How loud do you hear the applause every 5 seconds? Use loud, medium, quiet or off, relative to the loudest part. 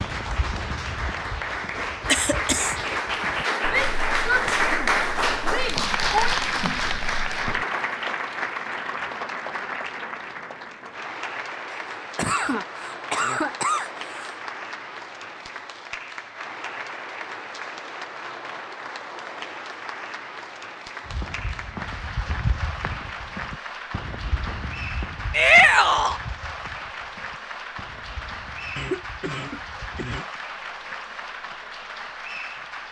loud, loud, medium, medium, medium, medium, medium.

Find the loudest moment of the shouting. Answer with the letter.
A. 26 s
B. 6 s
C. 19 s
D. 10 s
A.